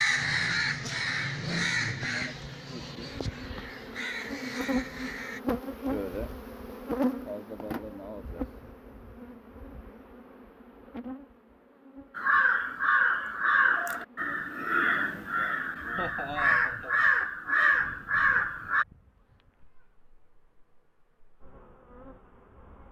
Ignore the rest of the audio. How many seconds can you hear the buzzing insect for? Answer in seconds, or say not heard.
23 s.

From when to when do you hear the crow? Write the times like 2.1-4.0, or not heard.
0.0-5.4, 12.2-18.9.